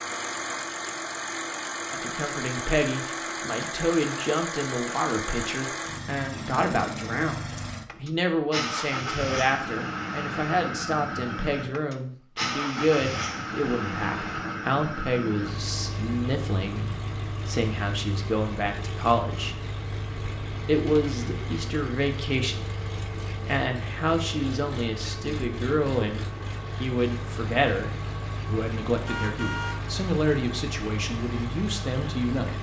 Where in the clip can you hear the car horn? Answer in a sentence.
You can hear the car horn from 29.1 to 29.9 s.